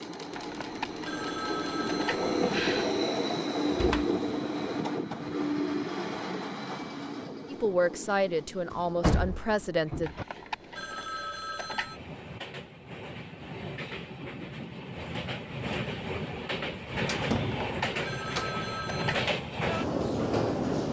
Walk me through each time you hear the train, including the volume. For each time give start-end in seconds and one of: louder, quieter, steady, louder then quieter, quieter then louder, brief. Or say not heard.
0.0-20.8 quieter then louder.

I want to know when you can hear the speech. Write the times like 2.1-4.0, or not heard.
7.5-10.1.